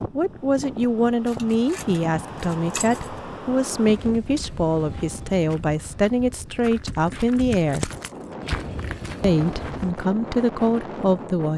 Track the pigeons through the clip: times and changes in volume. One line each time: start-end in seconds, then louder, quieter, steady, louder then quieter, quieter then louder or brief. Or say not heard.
not heard.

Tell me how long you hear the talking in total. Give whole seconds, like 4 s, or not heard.
10 s.